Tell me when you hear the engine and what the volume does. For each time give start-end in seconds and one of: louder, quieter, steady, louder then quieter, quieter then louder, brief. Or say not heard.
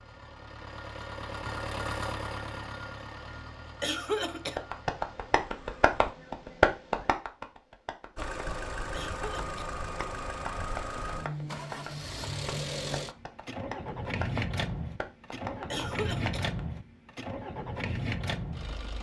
0.0-6.2 louder then quieter
8.2-18.9 steady.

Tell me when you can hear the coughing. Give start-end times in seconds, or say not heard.
3.8-4.6, 8.9-9.6, 15.7-16.4.